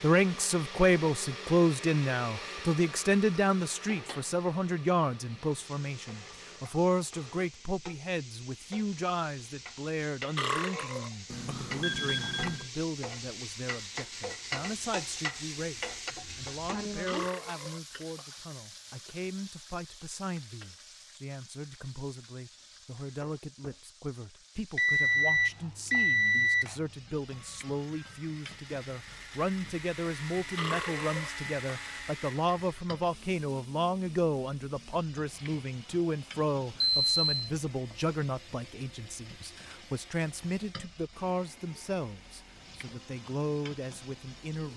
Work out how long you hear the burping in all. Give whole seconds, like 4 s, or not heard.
4 s.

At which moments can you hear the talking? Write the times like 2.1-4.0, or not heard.
0.0-44.7.